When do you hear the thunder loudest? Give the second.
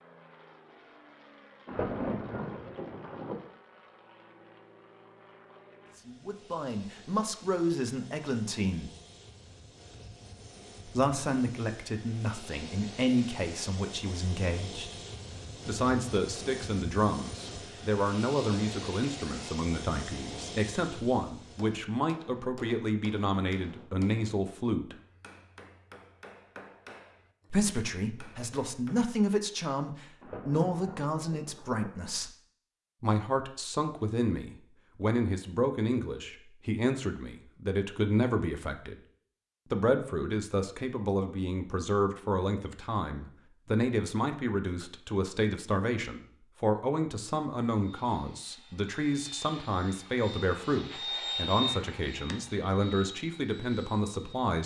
2 s.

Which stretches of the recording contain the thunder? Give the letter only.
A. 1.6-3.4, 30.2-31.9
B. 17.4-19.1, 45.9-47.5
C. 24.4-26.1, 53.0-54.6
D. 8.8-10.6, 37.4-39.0
A.